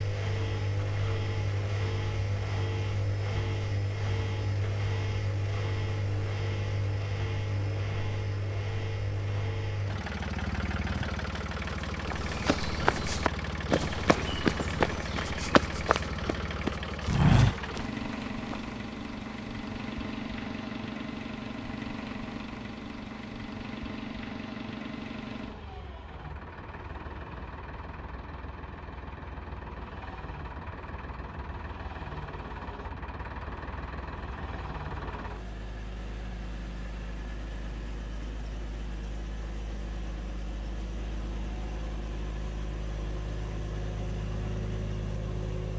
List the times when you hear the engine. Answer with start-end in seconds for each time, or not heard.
0.0-45.7.